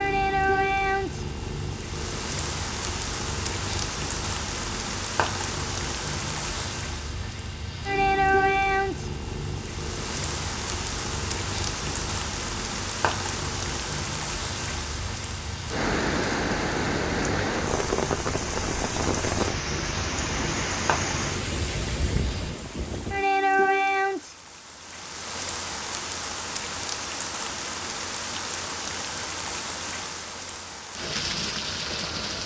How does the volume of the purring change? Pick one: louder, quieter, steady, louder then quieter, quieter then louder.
steady.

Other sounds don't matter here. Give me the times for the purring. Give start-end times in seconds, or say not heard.
0.0-22.6.